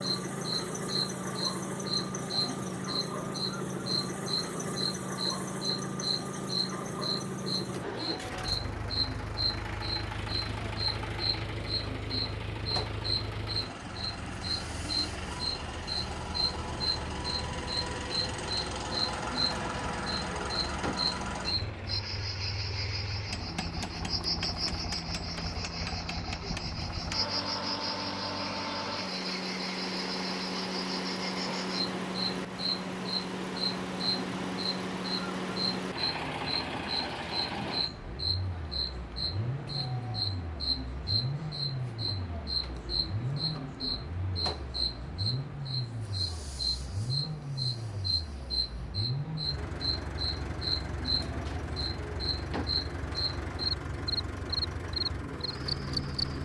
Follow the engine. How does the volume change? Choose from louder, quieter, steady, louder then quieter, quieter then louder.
steady.